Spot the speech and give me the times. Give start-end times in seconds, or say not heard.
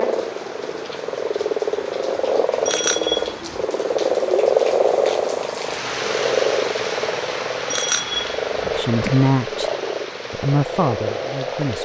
8.7-9.7, 10.3-11.7.